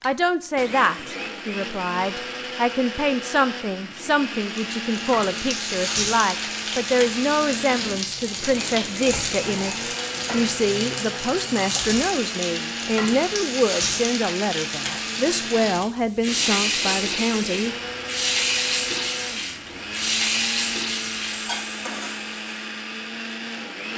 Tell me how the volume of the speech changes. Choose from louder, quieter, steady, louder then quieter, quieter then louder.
steady.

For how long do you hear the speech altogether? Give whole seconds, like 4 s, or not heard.
18 s.